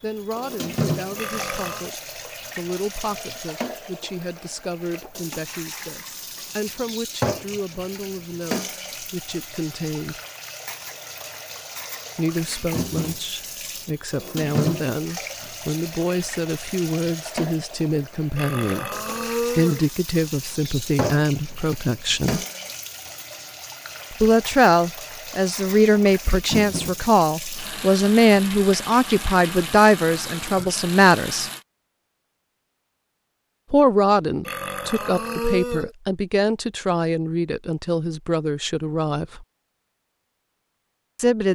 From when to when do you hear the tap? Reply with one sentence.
The tap can be heard from 0.0 to 31.6 s.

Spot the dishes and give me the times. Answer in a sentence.
The dishes can't be heard in this clip.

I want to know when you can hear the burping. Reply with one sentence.
You can hear the burping from 1.1 to 1.9 s, from 18.4 to 19.9 s and from 34.5 to 36.0 s.